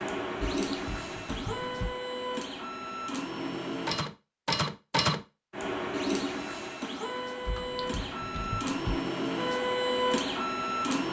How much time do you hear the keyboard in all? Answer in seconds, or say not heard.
3 s.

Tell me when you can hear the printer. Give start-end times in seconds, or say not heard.
0.0-11.0.